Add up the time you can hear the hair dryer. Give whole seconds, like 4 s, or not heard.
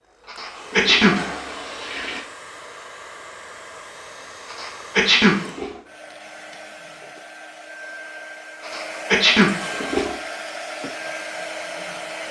12 s.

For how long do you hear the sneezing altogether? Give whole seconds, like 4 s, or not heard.
3 s.